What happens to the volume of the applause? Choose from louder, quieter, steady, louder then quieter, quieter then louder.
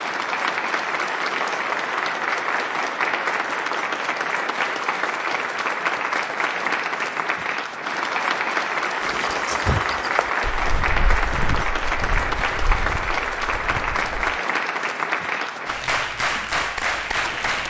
steady.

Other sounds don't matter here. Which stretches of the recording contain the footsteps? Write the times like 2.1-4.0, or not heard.
9.0-14.4.